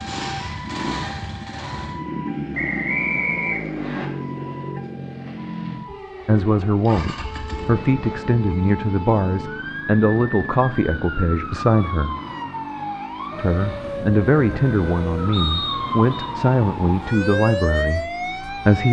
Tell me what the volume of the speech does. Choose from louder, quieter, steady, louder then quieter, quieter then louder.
steady.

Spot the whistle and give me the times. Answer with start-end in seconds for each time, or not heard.
2.5-4.0, 15.3-16.3.